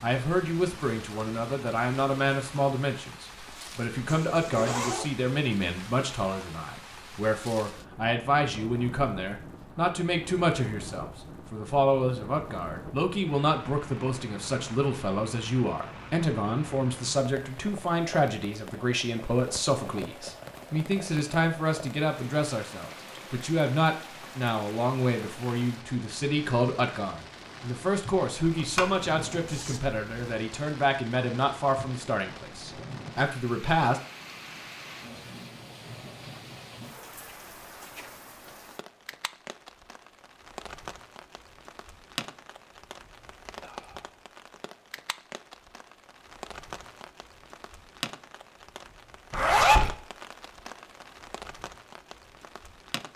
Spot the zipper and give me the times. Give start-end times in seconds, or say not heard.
4.0-5.1, 28.6-30.0, 49.3-49.9.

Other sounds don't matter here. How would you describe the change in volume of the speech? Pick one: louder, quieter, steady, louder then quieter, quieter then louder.
steady.